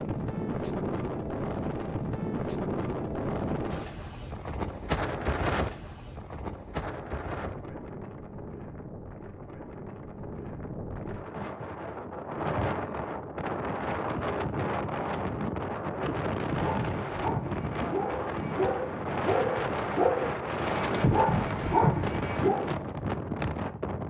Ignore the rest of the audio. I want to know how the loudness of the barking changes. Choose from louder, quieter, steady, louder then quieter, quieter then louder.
louder.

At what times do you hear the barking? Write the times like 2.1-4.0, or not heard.
16.5-22.6.